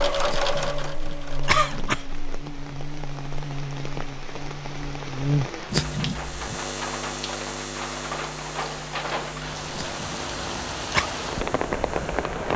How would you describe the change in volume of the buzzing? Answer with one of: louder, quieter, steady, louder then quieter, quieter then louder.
louder then quieter.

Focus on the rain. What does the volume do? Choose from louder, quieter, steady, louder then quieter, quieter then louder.
louder.